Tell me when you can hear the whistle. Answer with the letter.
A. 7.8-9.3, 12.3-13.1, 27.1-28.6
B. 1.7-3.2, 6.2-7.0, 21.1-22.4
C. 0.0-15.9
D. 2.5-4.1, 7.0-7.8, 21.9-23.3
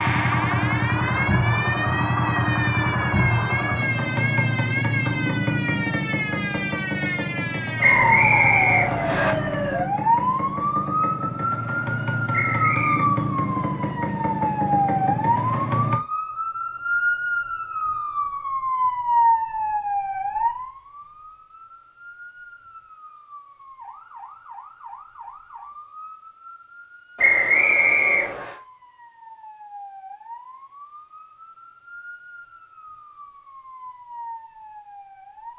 A.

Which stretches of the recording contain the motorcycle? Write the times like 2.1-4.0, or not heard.
0.0-15.9.